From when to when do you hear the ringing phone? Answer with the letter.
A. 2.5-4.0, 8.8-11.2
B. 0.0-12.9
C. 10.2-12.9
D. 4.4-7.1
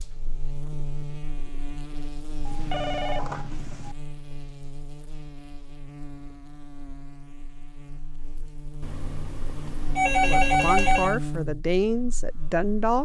A.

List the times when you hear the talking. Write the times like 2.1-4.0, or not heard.
10.2-12.9.